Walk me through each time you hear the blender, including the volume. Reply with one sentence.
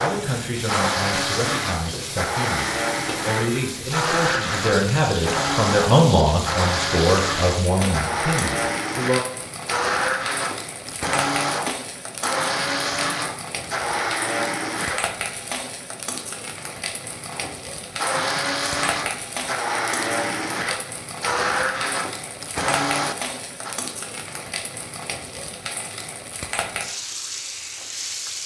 You can hear the blender from 0.0 to 15.1 s, at a steady volume; and from 17.3 to 23.8 s, at a steady volume.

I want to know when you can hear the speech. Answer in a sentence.
The speech can be heard from 0.0 to 9.2 s.